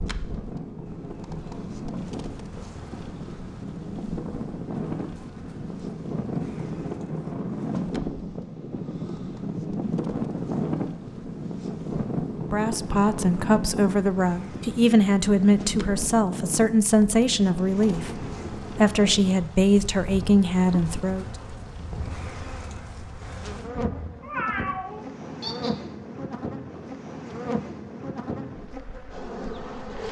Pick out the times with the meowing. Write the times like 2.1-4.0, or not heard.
24.2-25.8.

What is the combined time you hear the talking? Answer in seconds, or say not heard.
9 s.